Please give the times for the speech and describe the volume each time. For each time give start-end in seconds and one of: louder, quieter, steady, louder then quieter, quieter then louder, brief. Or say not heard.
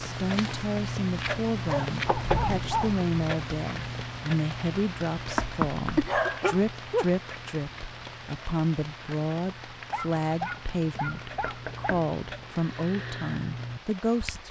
0.0-14.4 steady.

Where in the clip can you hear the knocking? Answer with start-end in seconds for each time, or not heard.
1.9-2.4, 5.3-6.3, 11.4-12.1.